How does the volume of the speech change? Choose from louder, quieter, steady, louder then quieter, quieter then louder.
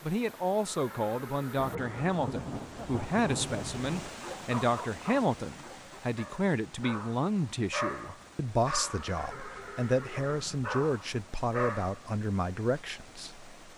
steady.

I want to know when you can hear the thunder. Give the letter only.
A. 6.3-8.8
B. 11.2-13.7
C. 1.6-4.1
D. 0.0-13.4
C.